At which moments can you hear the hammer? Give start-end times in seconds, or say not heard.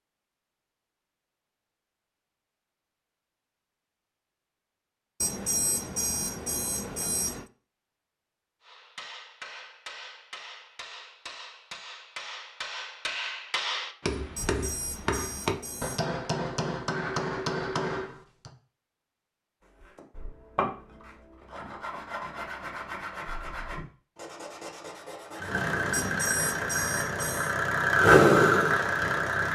8.6-18.5.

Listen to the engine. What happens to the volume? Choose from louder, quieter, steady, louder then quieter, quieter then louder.
louder then quieter.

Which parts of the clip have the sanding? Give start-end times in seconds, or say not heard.
19.6-26.2.